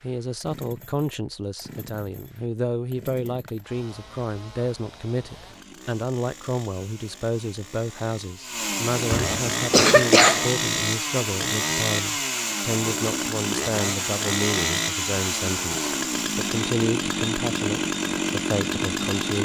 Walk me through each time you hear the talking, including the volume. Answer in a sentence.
The talking can be heard from 0.0 to 19.4 s, at a steady volume.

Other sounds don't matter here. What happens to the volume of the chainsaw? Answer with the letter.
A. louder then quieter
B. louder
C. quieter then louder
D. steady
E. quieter
B.